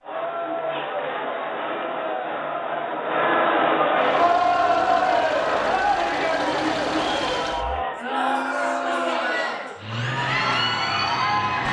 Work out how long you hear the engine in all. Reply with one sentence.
You can hear the engine for 6 seconds altogether.